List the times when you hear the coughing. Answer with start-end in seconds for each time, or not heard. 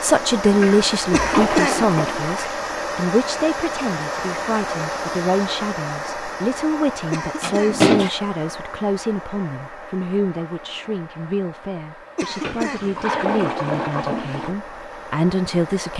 1.1-1.9, 7.1-7.8, 12.2-12.9.